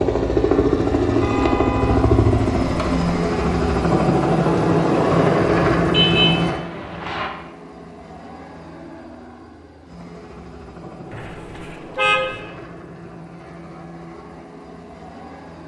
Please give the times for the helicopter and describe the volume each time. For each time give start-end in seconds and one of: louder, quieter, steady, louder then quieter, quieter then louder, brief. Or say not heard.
0.0-15.6 quieter.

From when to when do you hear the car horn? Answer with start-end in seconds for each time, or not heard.
1.2-3.0, 5.8-7.3, 11.1-12.4.